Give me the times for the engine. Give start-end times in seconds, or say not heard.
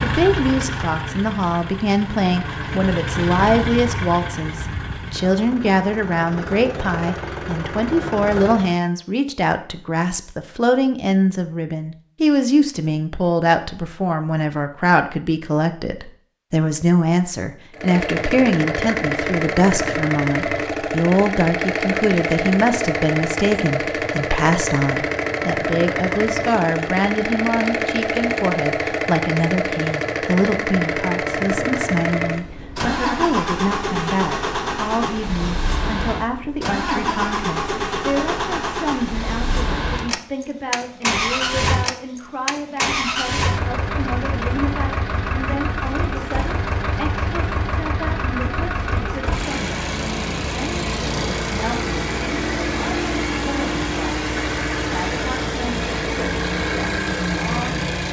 0.0-8.8, 17.7-58.0.